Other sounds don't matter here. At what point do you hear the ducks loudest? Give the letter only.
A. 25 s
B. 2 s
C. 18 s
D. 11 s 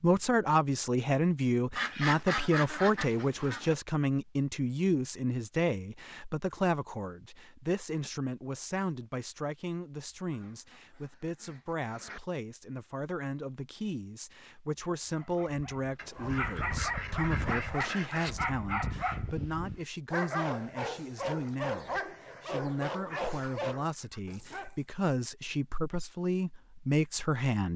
B.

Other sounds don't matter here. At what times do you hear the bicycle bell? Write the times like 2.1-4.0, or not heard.
not heard.